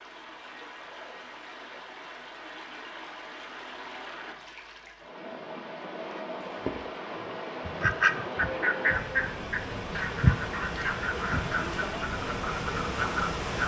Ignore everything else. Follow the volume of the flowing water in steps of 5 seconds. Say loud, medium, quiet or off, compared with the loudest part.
medium, loud, loud.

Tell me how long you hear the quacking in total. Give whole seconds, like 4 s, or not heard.
6 s.